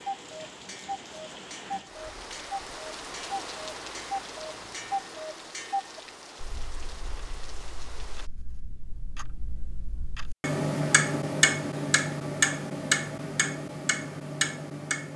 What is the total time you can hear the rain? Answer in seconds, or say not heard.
8 s.